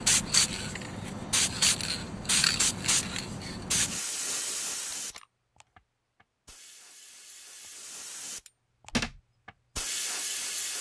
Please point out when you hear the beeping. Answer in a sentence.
The beeping can't be heard in this clip.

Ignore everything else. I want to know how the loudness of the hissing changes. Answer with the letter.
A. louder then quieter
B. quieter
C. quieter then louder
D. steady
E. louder
C.